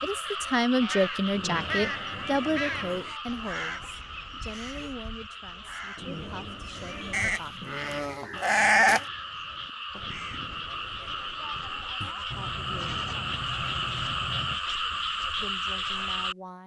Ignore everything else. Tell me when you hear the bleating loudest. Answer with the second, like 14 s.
9 s.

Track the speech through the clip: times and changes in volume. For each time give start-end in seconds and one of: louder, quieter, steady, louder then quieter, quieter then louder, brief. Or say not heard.
0.0-7.8 quieter
12.1-12.8 brief
15.3-16.6 brief.